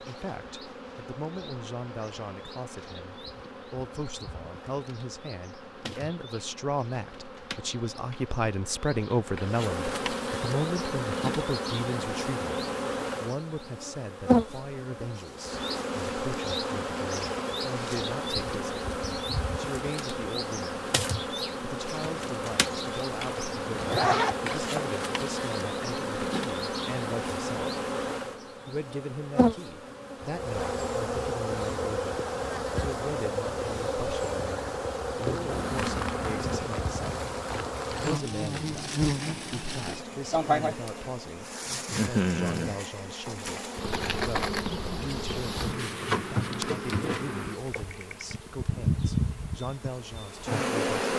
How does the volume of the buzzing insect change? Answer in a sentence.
The loudness of the buzzing insect goes up.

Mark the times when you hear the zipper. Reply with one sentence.
The zipper can be heard from 23.4 to 24.9 s.